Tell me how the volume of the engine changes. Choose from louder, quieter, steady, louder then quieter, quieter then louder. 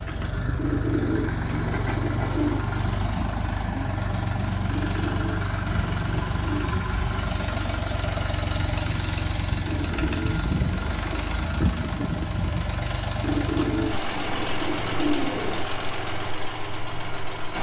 steady.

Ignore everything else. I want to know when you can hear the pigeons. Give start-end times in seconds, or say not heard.
0.6-2.6, 4.7-6.8, 9.7-11.4, 13.2-15.7.